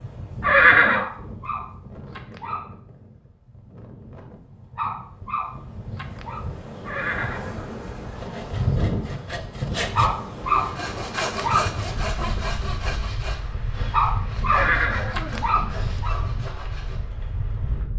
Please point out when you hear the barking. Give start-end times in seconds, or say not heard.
0.9-2.8, 4.8-6.5, 9.9-11.7, 13.9-16.3.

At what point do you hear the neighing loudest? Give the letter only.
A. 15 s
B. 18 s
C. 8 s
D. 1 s
D.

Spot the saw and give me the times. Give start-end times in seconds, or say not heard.
8.2-17.1.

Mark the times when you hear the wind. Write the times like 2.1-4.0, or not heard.
0.0-17.9.